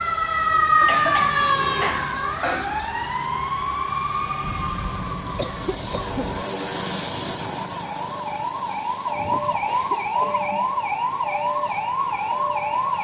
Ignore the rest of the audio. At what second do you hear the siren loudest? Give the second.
1 s.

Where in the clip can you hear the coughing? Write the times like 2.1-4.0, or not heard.
0.8-2.8, 4.4-6.5, 9.7-10.8.